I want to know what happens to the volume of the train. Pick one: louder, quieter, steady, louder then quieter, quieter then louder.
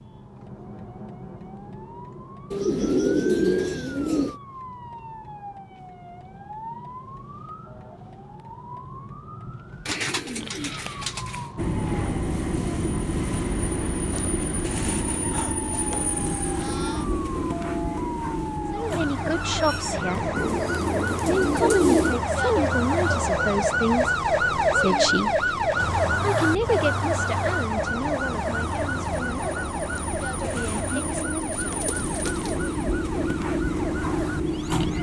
quieter then louder.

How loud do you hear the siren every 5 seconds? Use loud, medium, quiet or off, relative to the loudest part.
quiet, quiet, quiet, medium, loud, loud, medium.